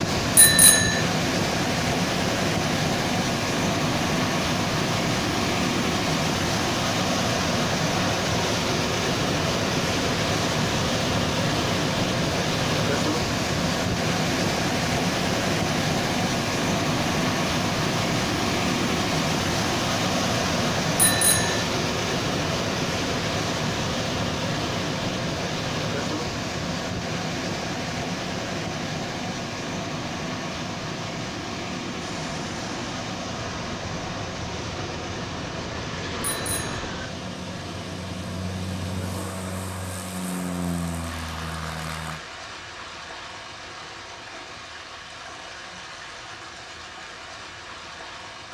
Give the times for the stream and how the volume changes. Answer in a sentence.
You can hear the stream from 0.0 to 48.5 s, getting quieter.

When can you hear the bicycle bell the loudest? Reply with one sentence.
The volume of the bicycle bell peaks at 1 second.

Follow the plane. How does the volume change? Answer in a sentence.
The volume of the plane goes up.